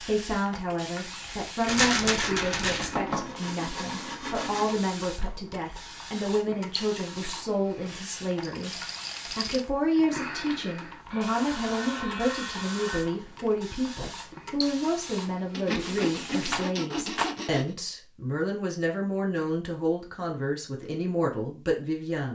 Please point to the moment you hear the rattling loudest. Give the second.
2 s.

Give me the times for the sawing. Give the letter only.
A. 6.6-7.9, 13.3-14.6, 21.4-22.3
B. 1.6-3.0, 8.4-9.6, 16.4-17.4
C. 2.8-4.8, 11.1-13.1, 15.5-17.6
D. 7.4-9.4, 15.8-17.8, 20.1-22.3
C.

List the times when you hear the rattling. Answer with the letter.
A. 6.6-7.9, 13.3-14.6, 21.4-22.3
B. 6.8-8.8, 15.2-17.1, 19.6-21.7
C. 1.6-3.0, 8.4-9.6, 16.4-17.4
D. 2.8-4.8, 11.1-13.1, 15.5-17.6
C.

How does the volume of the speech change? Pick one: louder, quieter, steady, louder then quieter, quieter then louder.
steady.